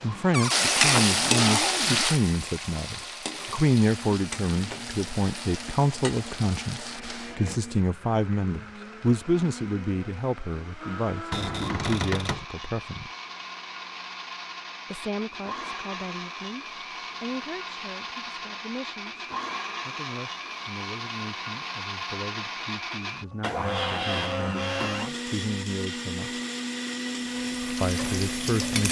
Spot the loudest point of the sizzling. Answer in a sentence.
The volume of the sizzling peaks at 1 second.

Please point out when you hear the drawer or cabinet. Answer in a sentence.
The drawer or cabinet can be heard from 0.3 to 2.1 s, from 11.3 to 12.4 s and from 23.4 to 25.1 s.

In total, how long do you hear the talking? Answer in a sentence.
The talking can be heard for 26 seconds in total.